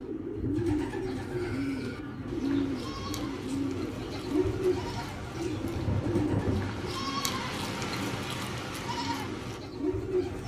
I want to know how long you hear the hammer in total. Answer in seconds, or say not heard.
not heard.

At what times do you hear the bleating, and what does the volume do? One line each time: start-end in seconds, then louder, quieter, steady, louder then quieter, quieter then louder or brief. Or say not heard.
1.1-9.6 louder.